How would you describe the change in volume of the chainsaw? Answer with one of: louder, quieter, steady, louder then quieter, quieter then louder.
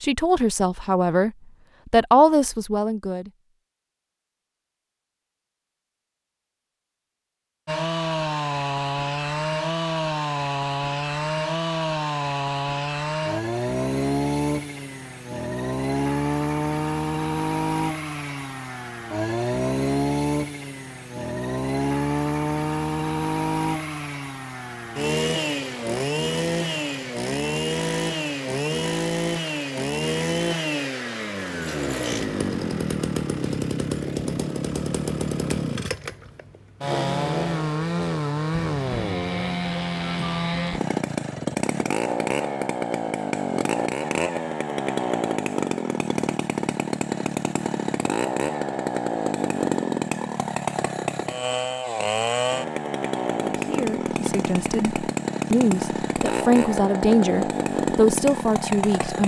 steady.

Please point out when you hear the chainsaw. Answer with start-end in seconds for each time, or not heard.
7.7-59.2.